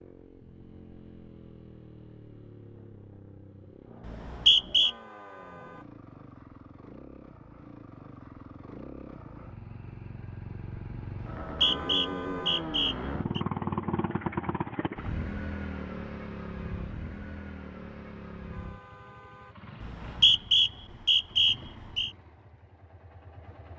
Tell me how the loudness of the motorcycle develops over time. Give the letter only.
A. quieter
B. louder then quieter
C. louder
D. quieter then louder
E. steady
B.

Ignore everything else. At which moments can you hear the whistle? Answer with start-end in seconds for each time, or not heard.
4.0-4.9, 11.2-13.4, 19.8-22.1.